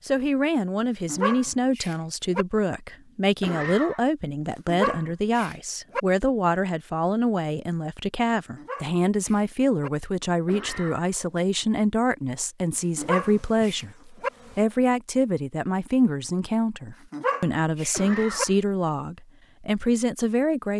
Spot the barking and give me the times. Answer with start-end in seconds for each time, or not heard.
0.8-2.5, 4.7-6.0, 8.6-9.9, 12.9-14.3, 17.1-18.4.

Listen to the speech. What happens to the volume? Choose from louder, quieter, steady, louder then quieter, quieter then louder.
steady.